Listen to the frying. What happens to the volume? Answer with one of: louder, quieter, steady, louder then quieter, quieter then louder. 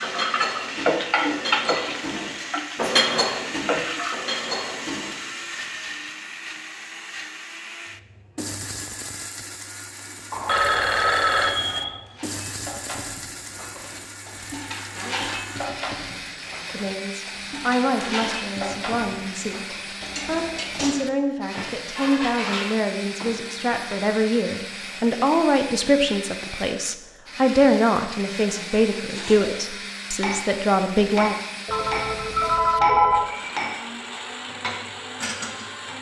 quieter then louder.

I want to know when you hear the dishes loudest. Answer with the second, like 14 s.
3 s.